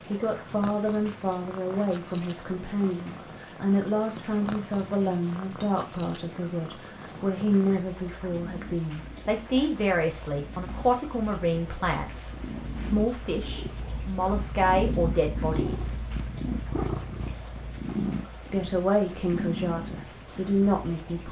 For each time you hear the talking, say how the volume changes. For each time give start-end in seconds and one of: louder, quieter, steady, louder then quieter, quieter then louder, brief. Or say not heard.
0.1-16.0 steady
18.5-21.2 brief.